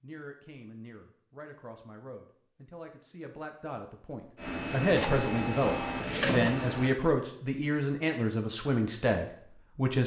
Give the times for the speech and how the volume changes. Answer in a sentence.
You can hear the speech from 0.0 to 10.0 s, getting louder.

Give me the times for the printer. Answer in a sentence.
The printer can be heard from 4.3 to 7.0 s.